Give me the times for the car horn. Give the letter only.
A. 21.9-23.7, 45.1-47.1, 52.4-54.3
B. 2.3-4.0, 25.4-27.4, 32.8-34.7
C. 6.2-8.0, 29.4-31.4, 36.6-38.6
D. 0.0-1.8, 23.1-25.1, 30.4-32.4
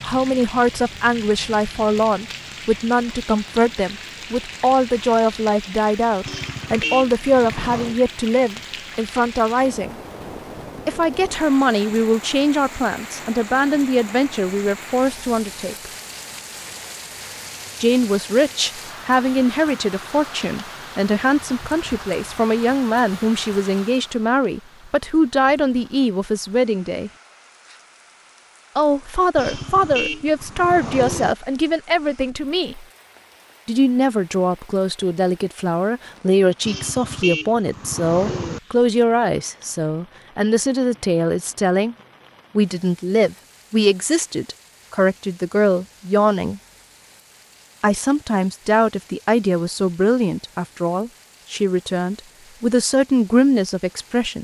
C.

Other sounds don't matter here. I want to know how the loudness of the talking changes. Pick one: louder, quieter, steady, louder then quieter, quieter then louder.
steady.